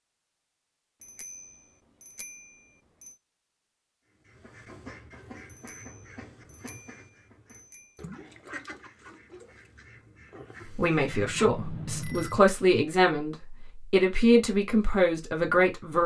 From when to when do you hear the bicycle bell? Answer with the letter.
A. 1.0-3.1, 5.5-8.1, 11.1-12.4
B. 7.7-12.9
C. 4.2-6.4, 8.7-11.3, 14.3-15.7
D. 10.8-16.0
A.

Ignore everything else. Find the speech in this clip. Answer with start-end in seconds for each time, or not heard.
10.8-16.0.